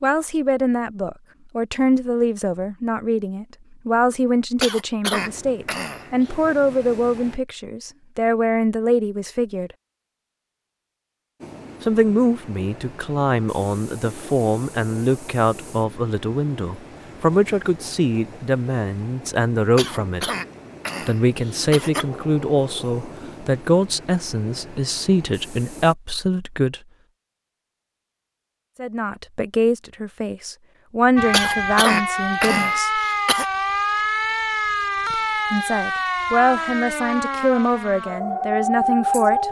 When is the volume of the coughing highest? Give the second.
32 s.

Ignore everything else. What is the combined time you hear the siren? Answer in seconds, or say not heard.
8 s.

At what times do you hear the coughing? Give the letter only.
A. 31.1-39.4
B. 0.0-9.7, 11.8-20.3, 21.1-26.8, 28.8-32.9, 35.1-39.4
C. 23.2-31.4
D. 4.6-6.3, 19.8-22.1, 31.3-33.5
D.